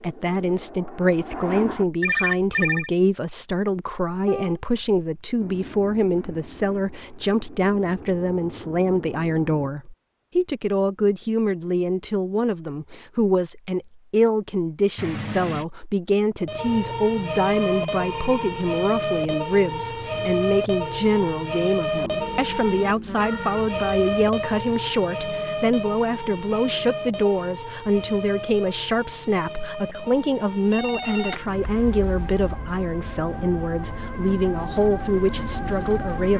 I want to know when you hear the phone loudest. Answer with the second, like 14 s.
2 s.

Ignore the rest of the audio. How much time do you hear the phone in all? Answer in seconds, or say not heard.
3 s.